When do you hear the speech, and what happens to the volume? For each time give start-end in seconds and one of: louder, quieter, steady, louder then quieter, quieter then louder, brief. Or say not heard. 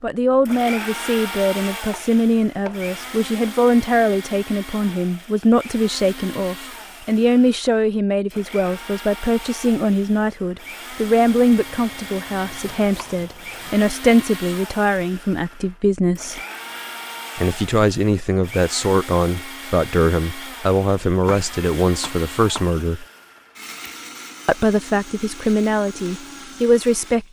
0.0-16.4 steady
17.4-23.1 steady
24.4-27.2 brief.